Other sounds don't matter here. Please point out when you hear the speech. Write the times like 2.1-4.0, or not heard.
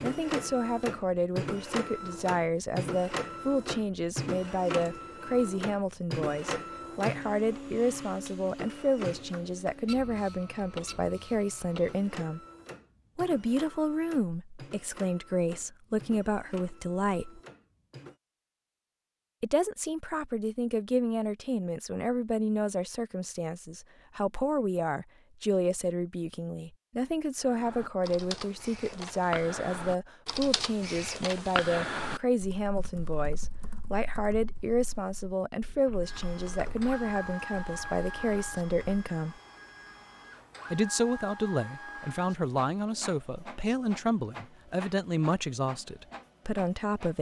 0.0-12.4, 13.2-17.4, 19.4-39.4, 40.7-47.1.